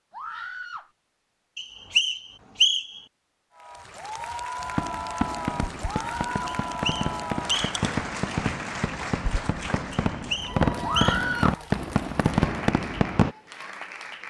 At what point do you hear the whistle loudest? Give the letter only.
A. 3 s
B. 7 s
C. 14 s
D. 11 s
A.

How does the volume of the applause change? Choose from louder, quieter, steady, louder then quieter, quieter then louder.
quieter.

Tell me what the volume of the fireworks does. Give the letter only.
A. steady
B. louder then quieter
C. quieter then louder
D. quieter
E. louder
E.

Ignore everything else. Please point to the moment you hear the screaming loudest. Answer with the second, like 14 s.
11 s.